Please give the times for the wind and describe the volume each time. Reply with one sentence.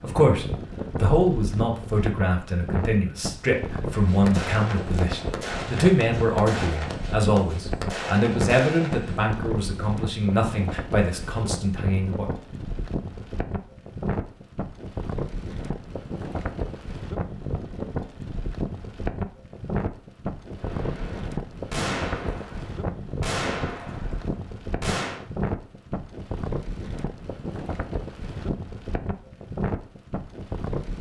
The wind can be heard from 0.0 to 30.9 s, at a steady volume.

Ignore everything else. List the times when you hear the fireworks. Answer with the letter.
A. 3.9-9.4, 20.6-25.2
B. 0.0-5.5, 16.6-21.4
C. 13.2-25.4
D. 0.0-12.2
A.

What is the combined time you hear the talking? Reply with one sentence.
You can hear the talking for 12 seconds altogether.